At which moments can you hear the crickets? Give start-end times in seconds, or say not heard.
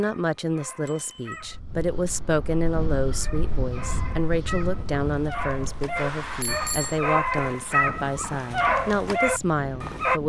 not heard.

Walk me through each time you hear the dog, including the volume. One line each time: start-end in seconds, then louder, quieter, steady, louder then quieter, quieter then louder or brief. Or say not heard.
0.0-1.6 brief
3.2-10.2 louder.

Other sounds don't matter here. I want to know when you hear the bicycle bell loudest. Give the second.
7 s.